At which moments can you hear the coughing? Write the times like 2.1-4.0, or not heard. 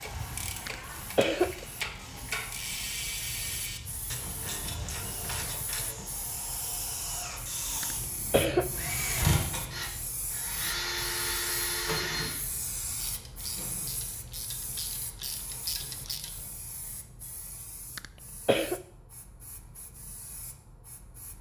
0.7-1.6, 7.8-8.7, 17.9-18.8.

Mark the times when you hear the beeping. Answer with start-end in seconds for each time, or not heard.
not heard.